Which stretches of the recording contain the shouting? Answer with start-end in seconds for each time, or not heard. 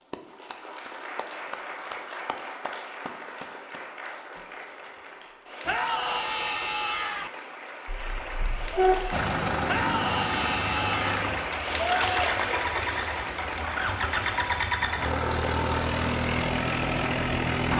5.7-7.3, 9.7-11.3.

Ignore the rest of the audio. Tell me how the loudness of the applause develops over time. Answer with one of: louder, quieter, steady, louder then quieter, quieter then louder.
louder then quieter.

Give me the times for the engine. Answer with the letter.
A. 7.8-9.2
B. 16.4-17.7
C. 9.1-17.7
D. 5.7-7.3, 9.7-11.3
C.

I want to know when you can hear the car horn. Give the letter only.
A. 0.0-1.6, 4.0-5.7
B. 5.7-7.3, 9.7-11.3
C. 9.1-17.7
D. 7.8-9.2
D.